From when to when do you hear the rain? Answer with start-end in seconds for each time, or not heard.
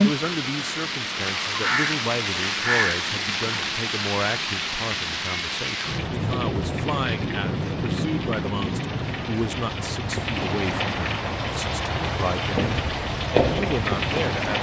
0.0-14.5.